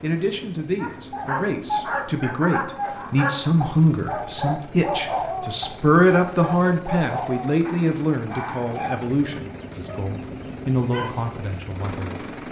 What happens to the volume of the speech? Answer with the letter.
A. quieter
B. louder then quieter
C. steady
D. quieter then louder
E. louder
B.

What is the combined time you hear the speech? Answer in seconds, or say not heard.
12 s.